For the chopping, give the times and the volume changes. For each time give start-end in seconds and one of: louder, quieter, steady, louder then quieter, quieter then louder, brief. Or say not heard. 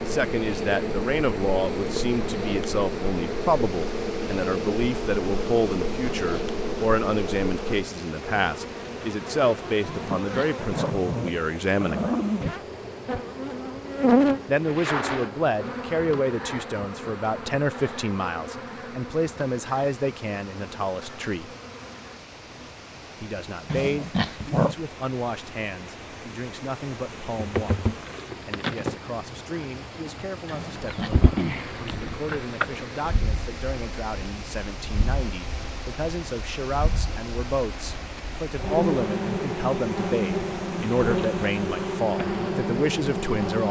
not heard.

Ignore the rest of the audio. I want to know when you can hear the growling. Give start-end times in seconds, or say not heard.
9.8-12.6, 23.6-24.8, 30.5-31.1.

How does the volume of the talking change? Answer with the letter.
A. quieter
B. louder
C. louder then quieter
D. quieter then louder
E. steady
D.